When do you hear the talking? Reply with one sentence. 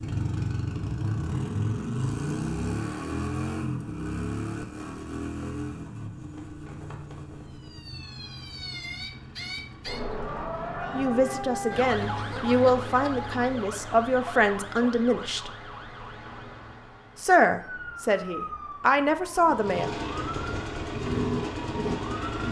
The talking can be heard from 10.9 to 15.5 s and from 17.2 to 19.9 s.